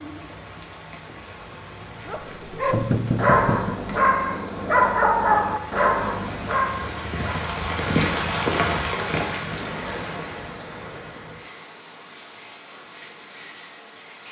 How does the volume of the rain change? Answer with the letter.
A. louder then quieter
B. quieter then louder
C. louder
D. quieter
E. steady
A.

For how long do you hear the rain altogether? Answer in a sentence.
You can hear the rain for 14 seconds altogether.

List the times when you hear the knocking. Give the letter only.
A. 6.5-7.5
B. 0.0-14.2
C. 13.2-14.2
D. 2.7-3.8
D.